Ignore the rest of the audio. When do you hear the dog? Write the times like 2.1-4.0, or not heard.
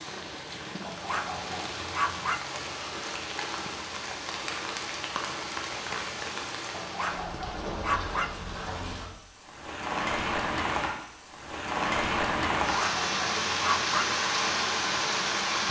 0.8-2.4, 6.7-8.3, 12.7-14.1.